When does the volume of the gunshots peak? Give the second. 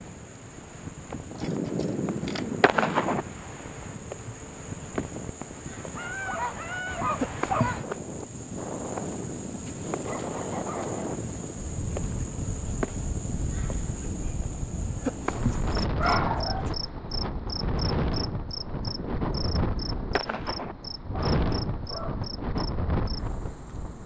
3 s.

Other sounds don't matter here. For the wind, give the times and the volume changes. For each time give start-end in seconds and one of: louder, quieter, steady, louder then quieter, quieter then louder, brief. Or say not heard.
0.0-24.0 louder.